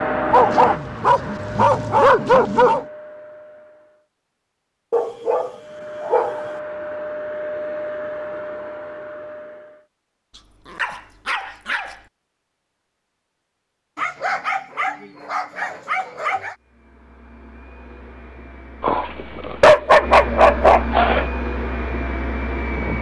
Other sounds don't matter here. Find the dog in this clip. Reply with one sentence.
You can hear the dog from 0.3 to 2.9 s, from 4.9 to 6.4 s, from 10.3 to 11.9 s, from 13.9 to 16.6 s and from 18.8 to 21.3 s.